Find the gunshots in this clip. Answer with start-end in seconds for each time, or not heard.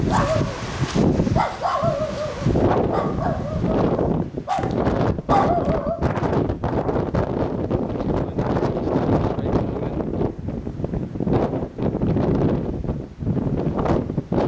not heard.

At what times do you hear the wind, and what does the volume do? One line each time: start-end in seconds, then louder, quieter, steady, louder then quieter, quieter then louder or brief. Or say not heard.
0.0-14.4 steady.